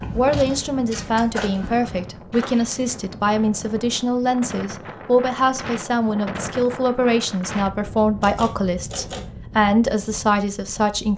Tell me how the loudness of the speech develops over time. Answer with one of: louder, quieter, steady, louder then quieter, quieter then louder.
steady.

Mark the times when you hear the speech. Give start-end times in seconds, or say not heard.
0.1-11.1.